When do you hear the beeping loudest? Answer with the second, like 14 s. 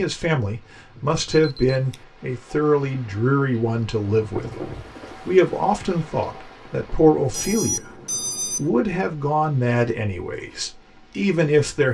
8 s.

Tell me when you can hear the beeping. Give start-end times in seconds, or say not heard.
1.4-2.0, 7.3-8.7.